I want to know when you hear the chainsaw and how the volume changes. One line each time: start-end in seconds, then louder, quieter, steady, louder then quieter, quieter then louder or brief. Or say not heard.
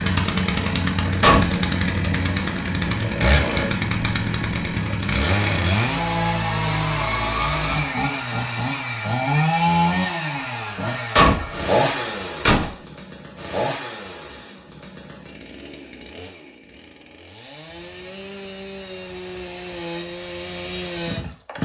0.0-21.5 quieter.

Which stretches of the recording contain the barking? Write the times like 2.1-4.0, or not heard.
not heard.